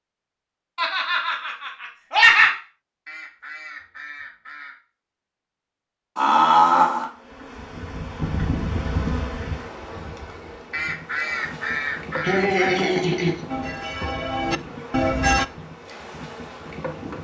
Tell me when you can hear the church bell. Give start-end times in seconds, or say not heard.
13.4-15.4.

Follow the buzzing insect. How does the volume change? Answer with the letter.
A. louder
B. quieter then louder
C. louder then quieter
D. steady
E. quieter
E.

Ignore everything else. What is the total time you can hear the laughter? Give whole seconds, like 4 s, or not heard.
4 s.